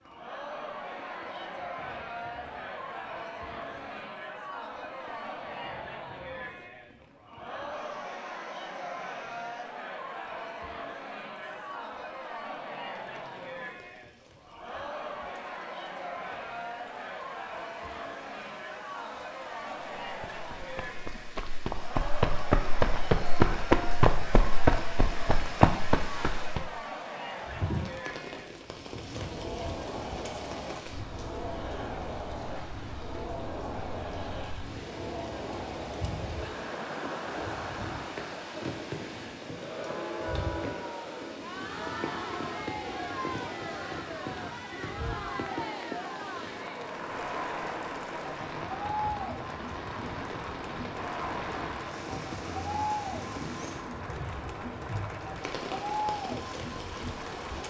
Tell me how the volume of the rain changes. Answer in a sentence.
The loudness of the rain goes up.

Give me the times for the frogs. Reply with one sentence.
You can't hear the frogs here.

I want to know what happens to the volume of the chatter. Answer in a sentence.
The volume of the chatter stays about the same.